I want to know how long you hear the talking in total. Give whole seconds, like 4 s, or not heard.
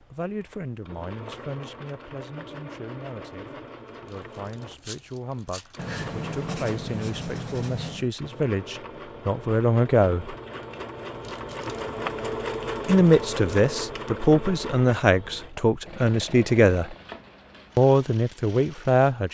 16 s.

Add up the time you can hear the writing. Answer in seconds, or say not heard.
2 s.